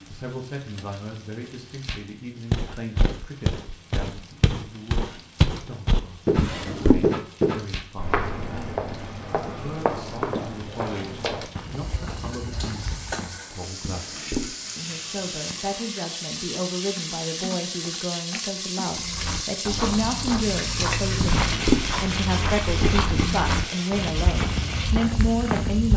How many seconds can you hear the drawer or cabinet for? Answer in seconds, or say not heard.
2 s.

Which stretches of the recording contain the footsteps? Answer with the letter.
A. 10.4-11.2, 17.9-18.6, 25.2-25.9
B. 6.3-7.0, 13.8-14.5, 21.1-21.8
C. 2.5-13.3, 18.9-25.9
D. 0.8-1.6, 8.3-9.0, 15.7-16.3
C.